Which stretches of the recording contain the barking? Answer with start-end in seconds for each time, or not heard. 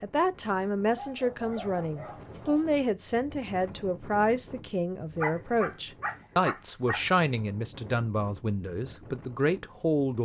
0.9-2.8, 5.2-7.0.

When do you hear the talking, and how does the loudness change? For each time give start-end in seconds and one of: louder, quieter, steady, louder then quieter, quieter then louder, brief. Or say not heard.
0.0-10.2 steady.